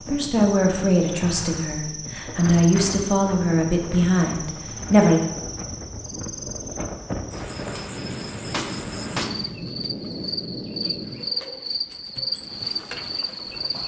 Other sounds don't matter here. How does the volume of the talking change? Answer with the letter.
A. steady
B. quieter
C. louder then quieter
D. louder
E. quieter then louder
E.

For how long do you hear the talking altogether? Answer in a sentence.
You can hear the talking for 5 seconds altogether.